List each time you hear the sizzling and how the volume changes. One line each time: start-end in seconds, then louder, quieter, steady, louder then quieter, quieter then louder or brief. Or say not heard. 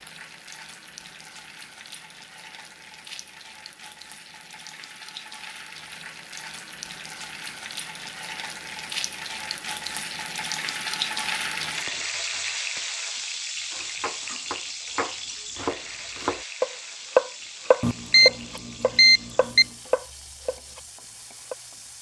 0.0-21.9 louder then quieter.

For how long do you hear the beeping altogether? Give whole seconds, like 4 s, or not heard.
2 s.